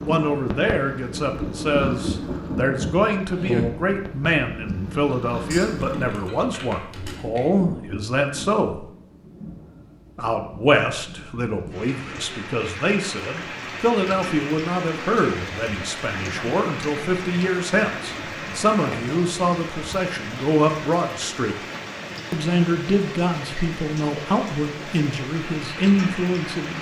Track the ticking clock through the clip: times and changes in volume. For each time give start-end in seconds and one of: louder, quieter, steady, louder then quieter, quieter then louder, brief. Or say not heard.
not heard.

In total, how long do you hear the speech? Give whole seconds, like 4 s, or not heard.
25 s.